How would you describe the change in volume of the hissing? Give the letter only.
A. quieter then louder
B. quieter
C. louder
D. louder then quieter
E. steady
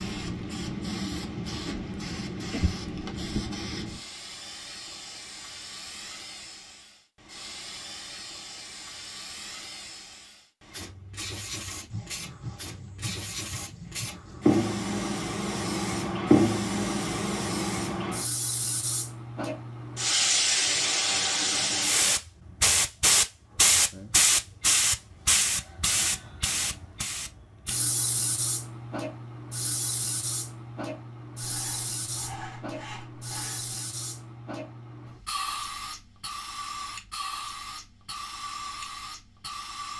D.